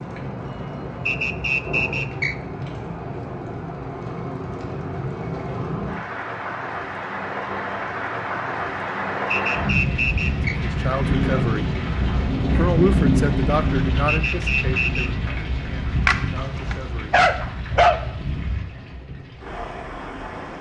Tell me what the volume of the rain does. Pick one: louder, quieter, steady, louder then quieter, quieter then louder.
louder then quieter.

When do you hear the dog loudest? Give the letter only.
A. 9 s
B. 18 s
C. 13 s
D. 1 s
B.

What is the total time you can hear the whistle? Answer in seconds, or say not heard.
4 s.